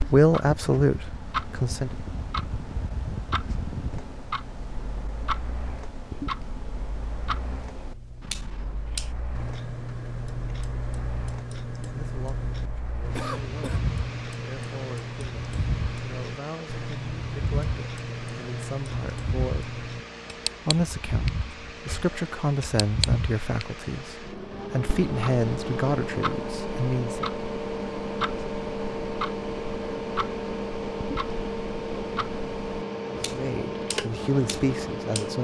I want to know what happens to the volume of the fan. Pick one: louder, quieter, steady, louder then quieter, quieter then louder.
louder.